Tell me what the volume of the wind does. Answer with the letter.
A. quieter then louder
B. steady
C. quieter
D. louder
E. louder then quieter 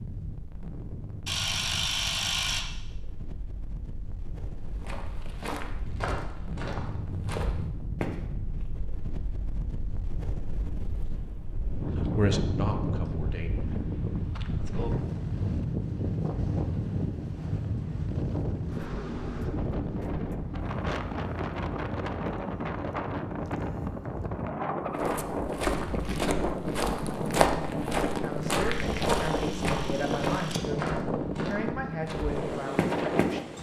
D.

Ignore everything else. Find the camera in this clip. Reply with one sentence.
The camera can be heard from 1.2 to 2.6 s and from 28.7 to 30.6 s.